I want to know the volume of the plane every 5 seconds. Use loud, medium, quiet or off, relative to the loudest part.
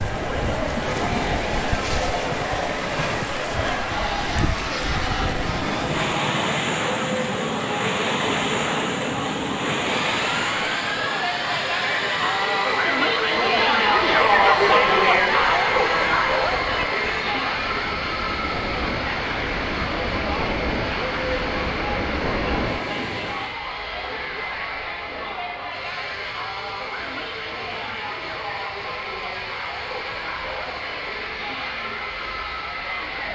loud, loud, loud, loud, medium, medium, medium.